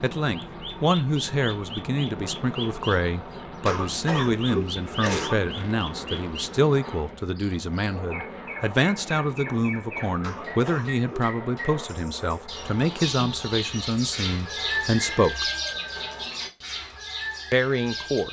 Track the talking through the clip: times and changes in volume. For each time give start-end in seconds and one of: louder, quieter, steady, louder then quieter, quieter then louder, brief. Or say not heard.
0.0-15.4 steady
17.5-18.2 brief.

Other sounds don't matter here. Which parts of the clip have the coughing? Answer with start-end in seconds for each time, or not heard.
3.6-5.5, 10.2-11.3.